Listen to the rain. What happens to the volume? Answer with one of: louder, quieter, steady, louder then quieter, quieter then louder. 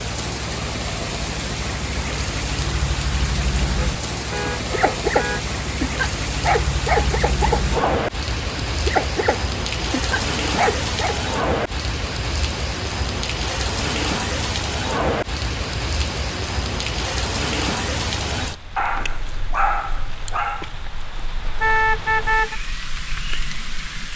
quieter.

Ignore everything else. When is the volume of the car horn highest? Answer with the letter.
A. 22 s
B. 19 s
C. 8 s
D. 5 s
A.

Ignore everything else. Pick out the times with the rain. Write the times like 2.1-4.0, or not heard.
0.0-24.1.